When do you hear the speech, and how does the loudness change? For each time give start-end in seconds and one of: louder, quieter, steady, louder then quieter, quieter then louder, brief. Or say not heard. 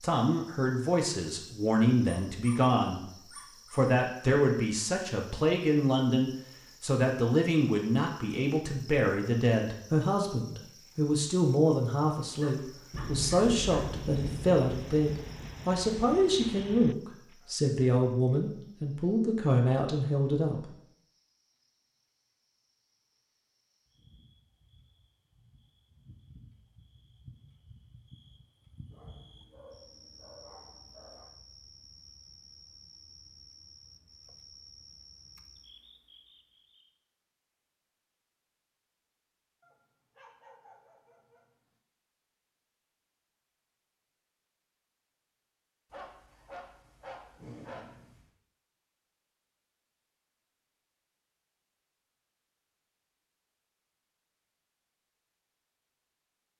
0.0-20.7 steady.